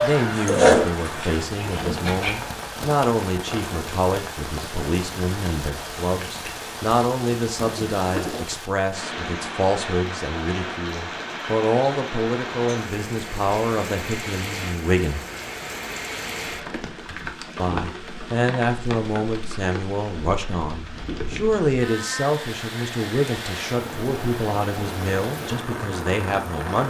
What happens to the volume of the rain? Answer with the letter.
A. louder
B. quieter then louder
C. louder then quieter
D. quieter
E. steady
E.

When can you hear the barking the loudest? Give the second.
1 s.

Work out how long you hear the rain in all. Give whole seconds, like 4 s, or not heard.
27 s.